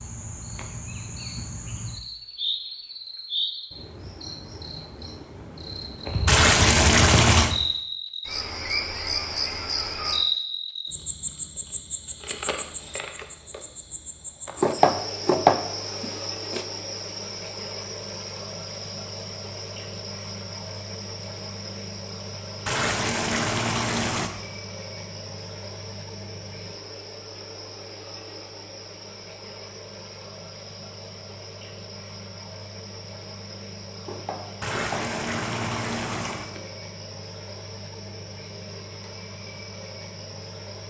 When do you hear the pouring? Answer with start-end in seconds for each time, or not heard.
6.2-7.5, 22.6-24.3, 34.6-36.5.